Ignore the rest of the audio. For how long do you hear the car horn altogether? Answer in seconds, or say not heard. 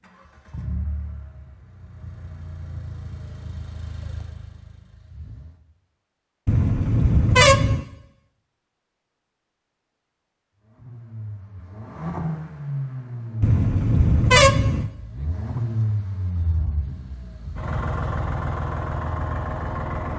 3 s.